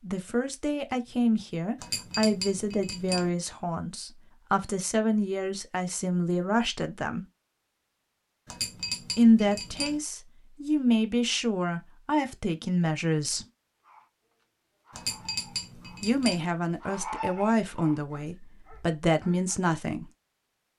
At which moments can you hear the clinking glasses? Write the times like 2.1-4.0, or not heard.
1.8-3.3, 8.4-10.0, 14.9-16.4.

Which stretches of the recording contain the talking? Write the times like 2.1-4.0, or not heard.
0.0-7.2, 9.2-13.4, 16.0-20.1.